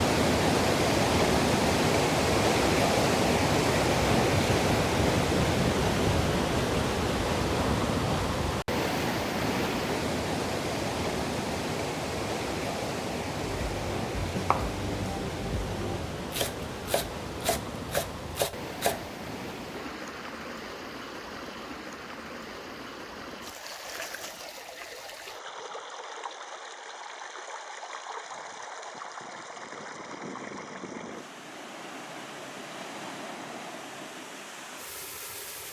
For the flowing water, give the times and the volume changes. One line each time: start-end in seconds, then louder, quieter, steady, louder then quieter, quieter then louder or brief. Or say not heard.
0.0-35.6 quieter.